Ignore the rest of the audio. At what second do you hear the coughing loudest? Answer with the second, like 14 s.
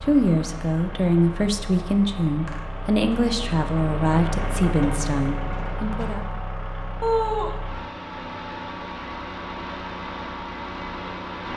7 s.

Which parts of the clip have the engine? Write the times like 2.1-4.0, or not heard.
0.0-11.5.